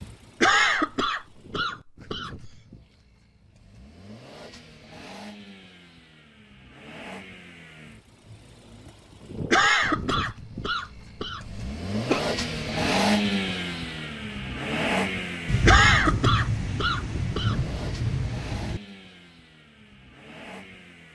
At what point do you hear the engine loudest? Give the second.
13 s.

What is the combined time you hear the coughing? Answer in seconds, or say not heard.
7 s.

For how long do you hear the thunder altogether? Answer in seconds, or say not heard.
3 s.